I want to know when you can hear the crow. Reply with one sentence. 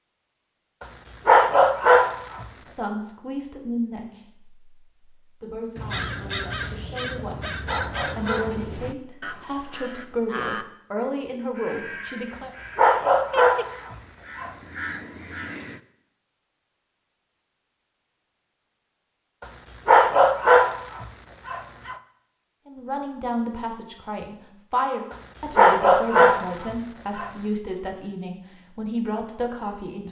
You can hear the crow from 5.8 to 15.8 s.